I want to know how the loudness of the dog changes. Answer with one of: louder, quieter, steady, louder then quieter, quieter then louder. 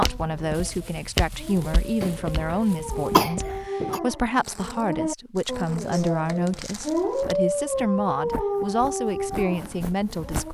louder.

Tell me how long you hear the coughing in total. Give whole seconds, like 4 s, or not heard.
2 s.